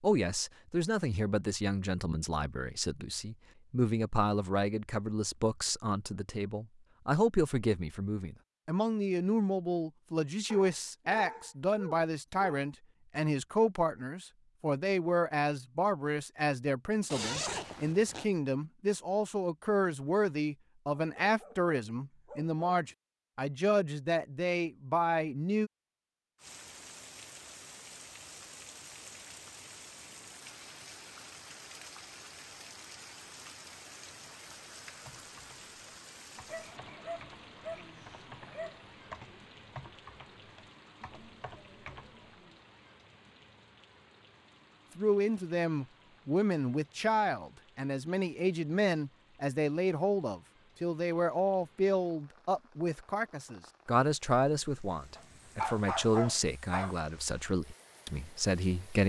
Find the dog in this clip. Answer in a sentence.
You can hear the dog from 10.5 to 12.7 s, from 20.9 to 22.6 s, from 36.5 to 38.9 s and from 55.1 to 57.0 s.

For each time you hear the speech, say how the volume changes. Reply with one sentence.
You can hear the speech from 0.0 to 25.7 s, at a steady volume; and from 45.0 to 59.0 s, at a steady volume.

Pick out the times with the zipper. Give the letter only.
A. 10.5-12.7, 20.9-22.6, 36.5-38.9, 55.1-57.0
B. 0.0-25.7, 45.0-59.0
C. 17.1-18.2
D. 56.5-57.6
C.